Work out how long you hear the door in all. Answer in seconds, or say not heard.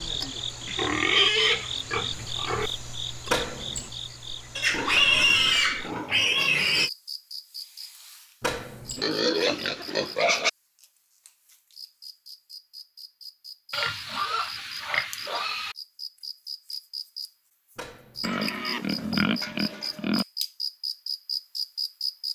2 s.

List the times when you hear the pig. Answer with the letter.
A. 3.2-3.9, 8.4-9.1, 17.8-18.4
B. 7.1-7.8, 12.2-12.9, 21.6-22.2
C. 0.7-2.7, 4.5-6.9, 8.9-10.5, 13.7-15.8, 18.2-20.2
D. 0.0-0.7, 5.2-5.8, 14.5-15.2
C.